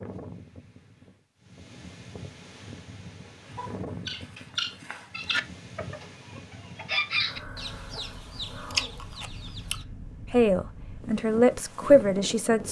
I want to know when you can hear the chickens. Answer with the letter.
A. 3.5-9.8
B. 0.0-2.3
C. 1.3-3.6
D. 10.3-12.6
A.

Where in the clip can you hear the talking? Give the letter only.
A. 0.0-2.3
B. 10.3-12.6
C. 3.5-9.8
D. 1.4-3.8
B.